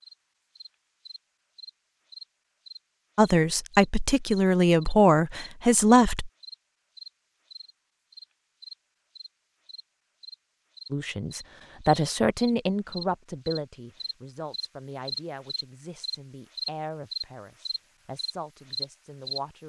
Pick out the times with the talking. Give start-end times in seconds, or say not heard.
3.1-6.3, 10.9-19.6.